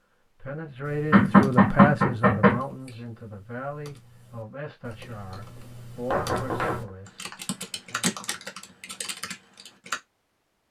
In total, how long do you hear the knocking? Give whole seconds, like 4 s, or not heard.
2 s.